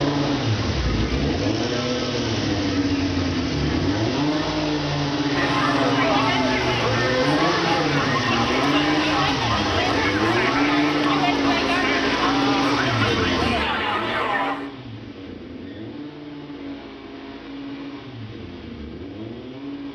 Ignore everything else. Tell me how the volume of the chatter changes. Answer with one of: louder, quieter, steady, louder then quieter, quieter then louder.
louder.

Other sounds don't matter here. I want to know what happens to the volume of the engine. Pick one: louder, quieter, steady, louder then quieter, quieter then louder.
quieter.